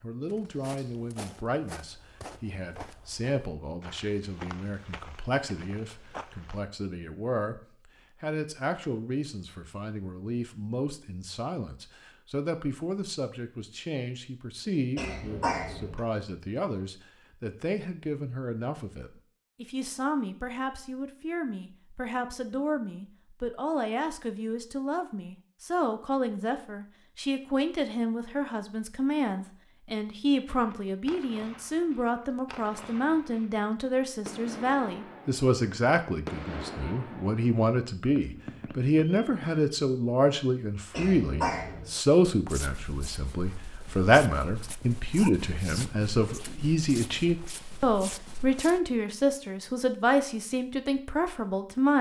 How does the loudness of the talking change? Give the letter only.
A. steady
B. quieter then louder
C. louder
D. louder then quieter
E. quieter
C.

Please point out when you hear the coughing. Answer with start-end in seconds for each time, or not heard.
14.9-16.0, 40.9-41.9.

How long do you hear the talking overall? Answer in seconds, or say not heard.
52 s.